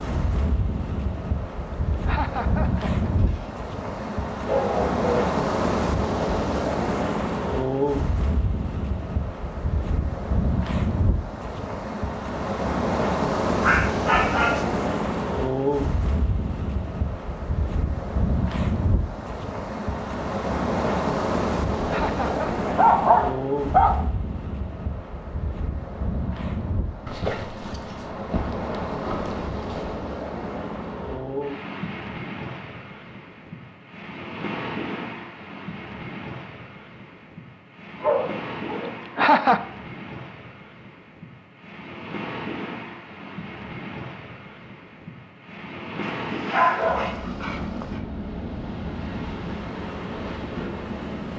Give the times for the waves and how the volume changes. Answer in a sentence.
The waves can be heard from 0.0 to 51.3 s, getting quieter.